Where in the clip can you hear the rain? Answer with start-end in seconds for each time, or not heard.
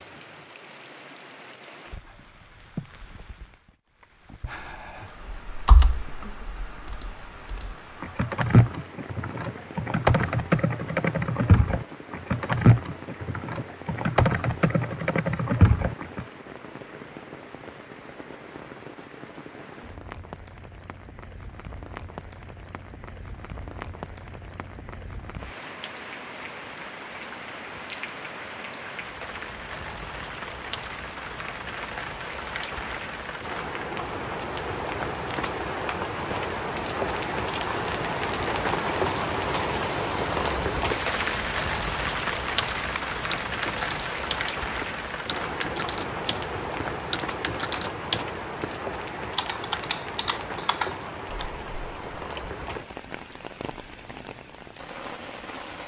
0.0-55.8.